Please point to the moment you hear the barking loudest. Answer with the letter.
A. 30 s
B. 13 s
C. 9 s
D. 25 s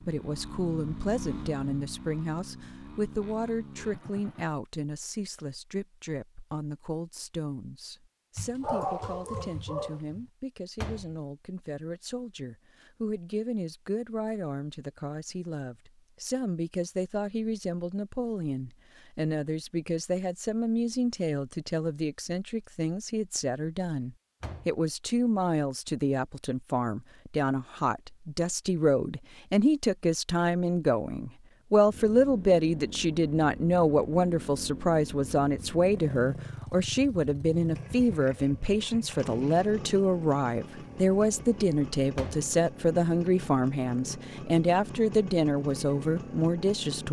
C.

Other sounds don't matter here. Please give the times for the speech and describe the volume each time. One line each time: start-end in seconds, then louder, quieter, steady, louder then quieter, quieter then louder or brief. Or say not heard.
0.0-47.0 louder.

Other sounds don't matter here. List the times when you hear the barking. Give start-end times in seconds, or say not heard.
8.3-10.2.